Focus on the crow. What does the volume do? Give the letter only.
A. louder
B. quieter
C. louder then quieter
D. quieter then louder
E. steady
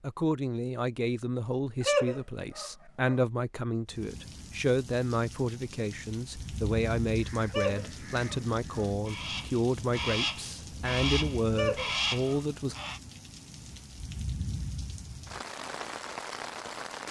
A.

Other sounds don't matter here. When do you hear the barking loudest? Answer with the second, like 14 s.
2 s.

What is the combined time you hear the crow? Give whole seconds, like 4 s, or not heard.
6 s.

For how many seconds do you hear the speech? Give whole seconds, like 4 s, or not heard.
13 s.